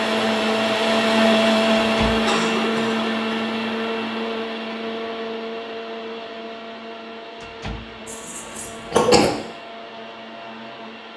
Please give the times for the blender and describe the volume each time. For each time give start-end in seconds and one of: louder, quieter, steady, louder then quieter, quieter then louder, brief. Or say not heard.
0.0-11.1 quieter.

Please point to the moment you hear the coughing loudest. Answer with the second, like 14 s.
9 s.